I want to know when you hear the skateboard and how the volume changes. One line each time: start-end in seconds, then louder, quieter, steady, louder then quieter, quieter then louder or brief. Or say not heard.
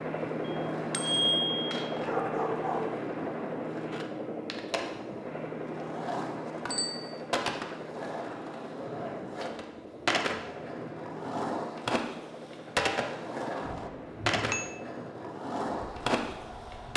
0.0-16.9 louder.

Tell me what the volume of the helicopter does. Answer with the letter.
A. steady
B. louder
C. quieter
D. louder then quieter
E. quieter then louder
C.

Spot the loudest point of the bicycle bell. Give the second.
1 s.